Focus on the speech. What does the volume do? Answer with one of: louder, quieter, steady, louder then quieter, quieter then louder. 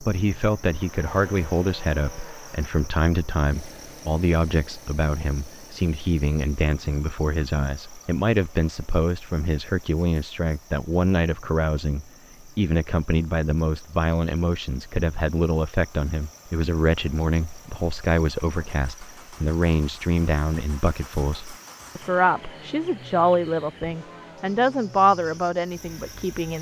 steady.